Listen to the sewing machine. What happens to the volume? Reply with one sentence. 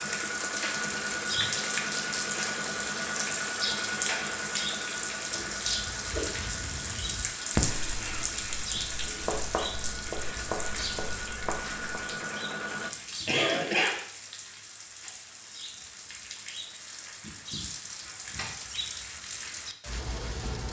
The volume of the sewing machine goes down, then up.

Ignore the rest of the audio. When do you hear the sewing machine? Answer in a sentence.
The sewing machine can be heard from 0.0 to 12.9 s.